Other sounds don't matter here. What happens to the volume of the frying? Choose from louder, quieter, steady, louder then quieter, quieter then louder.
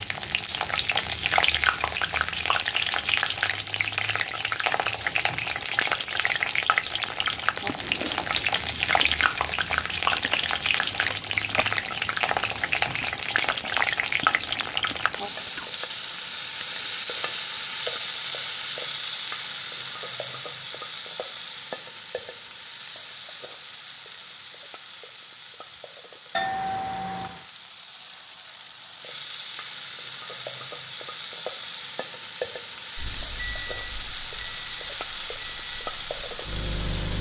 quieter then louder.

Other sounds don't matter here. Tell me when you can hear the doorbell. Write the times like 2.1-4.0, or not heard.
26.3-27.4.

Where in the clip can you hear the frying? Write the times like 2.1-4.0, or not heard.
0.0-37.1.